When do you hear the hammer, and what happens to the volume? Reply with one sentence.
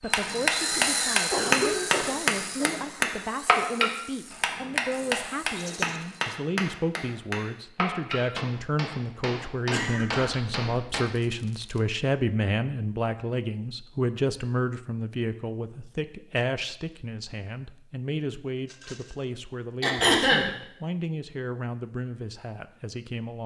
You can hear the hammer from 0.1 to 11.1 s, getting quieter.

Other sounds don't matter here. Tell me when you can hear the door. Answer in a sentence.
The door can't be heard in this clip.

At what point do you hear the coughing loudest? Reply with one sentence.
The volume of the coughing peaks at 20 seconds.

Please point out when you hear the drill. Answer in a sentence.
The drill can be heard from 0.0 to 6.3 s.